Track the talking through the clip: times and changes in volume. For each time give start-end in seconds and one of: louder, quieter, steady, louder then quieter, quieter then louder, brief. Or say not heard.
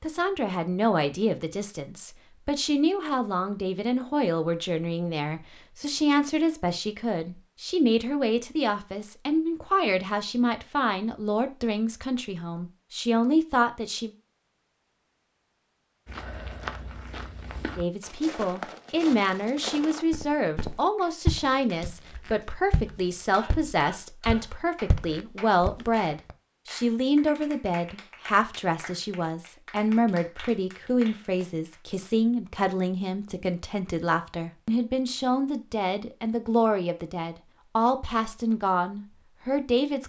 0.0-14.1 steady
17.8-40.0 steady.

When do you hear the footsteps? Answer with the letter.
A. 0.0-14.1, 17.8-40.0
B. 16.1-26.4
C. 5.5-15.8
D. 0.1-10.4
B.